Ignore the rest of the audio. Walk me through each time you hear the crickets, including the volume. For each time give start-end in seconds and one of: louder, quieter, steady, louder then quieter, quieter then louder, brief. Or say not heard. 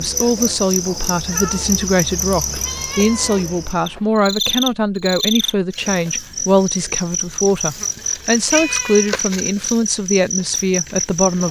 0.0-11.4 steady.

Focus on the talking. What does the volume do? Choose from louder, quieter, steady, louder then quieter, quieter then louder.
steady.